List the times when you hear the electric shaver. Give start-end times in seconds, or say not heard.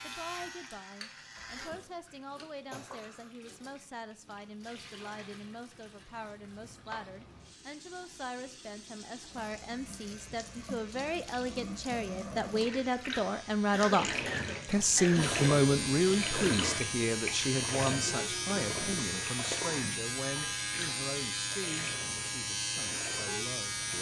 0.0-1.8, 9.3-23.9.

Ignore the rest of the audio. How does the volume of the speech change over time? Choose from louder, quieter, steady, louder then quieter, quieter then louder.
louder then quieter.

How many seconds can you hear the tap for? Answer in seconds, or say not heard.
24 s.